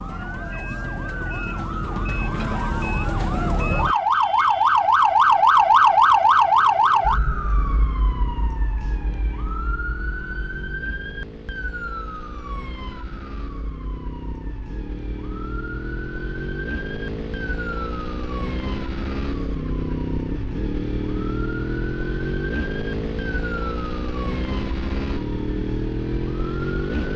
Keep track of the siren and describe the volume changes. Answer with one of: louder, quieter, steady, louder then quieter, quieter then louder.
quieter.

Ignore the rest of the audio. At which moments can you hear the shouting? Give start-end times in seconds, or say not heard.
not heard.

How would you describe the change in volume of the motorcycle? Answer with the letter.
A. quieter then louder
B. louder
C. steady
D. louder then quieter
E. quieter
B.